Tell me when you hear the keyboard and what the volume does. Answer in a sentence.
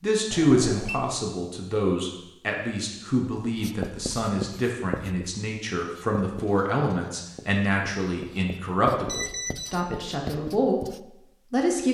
You can't hear the keyboard here.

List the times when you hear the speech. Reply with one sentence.
The speech can be heard from 0.0 to 11.8 s.